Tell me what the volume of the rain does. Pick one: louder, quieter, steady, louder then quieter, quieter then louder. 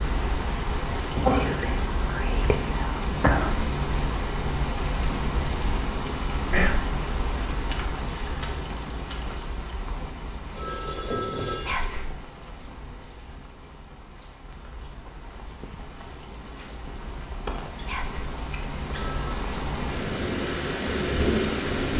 quieter then louder.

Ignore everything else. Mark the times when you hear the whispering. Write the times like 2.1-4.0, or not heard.
0.7-3.5, 6.5-6.9, 11.7-12.1, 17.9-18.4.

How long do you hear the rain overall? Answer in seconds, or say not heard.
22 s.